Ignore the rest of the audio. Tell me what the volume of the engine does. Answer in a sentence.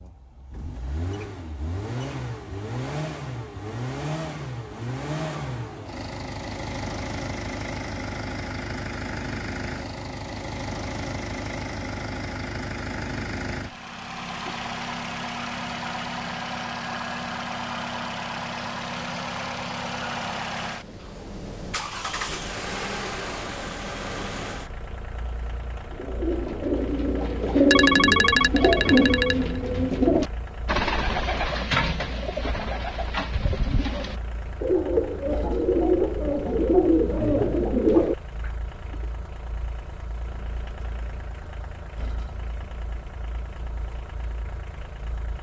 The loudness of the engine goes down.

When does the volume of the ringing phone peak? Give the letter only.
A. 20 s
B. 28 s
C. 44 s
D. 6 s
B.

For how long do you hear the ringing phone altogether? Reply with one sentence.
The ringing phone can be heard for 2 seconds in total.